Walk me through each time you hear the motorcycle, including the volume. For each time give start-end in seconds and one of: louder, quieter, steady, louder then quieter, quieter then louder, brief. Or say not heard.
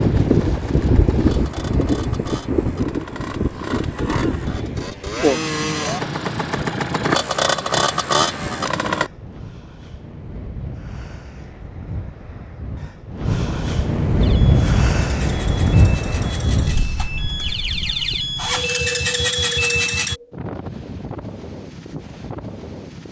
0.0-9.1 louder
14.2-20.1 louder.